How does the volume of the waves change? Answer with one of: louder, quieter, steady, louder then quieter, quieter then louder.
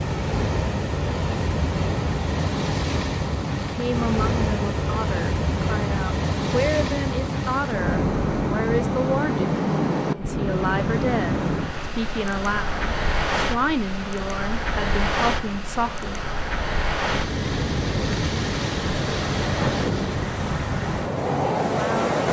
steady.